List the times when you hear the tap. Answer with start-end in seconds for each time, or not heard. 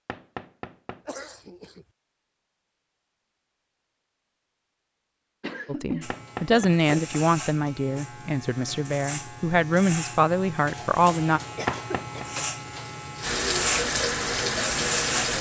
12.7-15.3.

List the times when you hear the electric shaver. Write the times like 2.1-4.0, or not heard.
6.0-15.3.